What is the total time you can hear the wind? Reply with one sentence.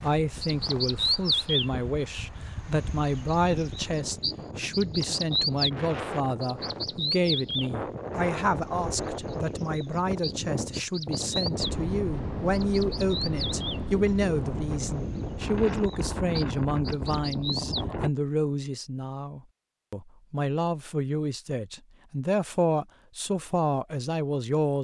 You can hear the wind for 18 seconds altogether.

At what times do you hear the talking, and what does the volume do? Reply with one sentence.
You can hear the talking from 0.0 to 24.7 s, at a steady volume.